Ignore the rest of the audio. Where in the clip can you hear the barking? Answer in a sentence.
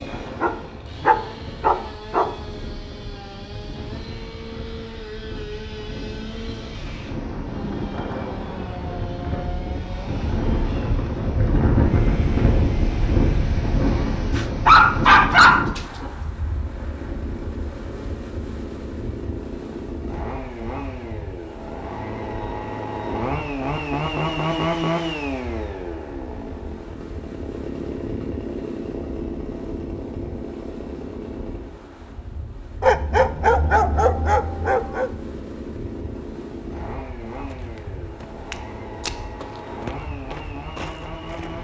The barking can be heard from 0.4 to 2.4 s, from 14.3 to 16.1 s and from 32.8 to 35.1 s.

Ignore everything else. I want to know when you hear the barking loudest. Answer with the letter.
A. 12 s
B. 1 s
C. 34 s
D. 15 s
D.